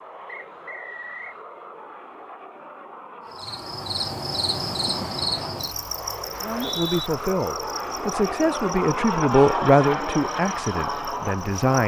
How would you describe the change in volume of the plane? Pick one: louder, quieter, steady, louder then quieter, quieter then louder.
louder.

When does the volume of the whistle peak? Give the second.
7 s.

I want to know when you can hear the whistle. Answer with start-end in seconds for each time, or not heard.
0.2-1.4, 6.3-7.1.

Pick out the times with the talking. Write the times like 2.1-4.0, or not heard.
6.4-11.8.